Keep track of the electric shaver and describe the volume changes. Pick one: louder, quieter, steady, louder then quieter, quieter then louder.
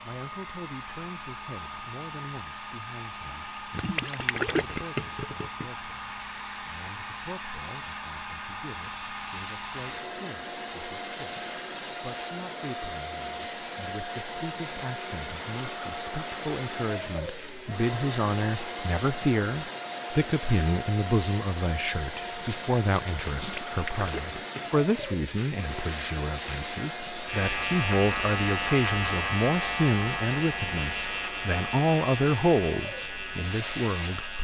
louder.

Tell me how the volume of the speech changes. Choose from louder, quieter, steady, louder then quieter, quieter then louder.
louder.